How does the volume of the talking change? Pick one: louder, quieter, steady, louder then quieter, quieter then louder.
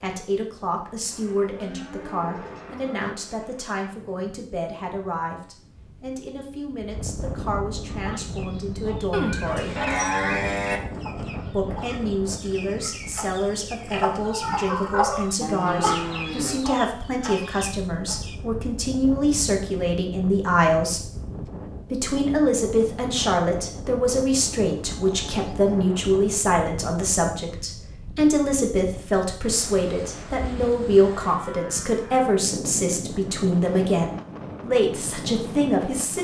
louder.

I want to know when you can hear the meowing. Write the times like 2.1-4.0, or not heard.
not heard.